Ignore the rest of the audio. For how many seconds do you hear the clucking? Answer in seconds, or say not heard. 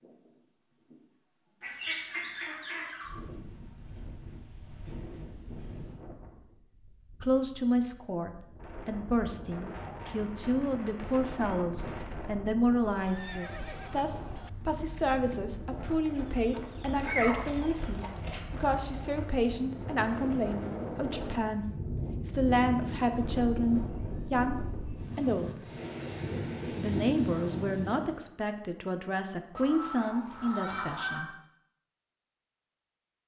5 s.